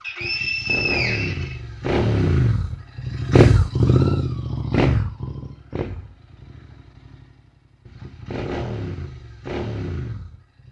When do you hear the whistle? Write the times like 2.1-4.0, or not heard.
0.0-1.6.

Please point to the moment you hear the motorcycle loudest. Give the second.
4 s.